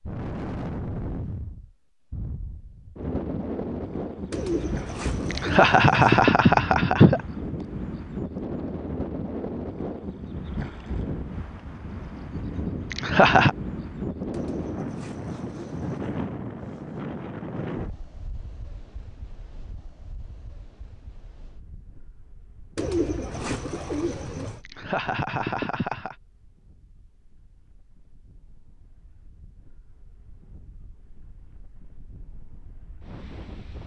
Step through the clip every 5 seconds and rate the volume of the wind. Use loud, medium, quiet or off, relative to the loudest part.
loud, loud, loud, loud, quiet, quiet, quiet.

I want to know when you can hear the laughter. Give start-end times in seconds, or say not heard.
5.3-7.2, 12.9-13.6, 24.6-26.1.